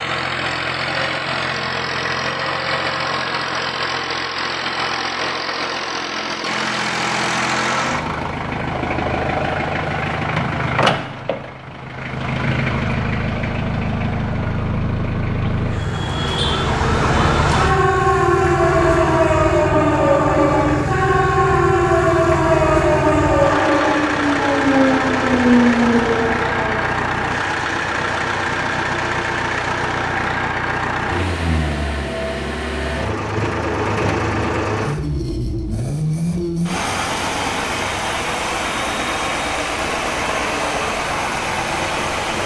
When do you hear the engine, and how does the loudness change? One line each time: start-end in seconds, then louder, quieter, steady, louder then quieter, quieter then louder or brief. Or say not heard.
0.0-42.4 steady.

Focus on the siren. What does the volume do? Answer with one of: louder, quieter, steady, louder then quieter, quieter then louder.
steady.